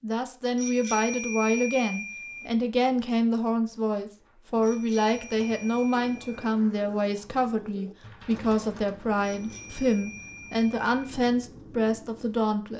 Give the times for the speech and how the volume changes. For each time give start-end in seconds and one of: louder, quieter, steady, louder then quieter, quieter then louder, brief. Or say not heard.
0.0-12.7 steady.